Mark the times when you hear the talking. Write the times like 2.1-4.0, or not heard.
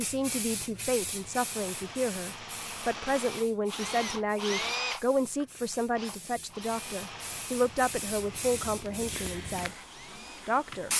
0.0-9.8, 10.4-10.9.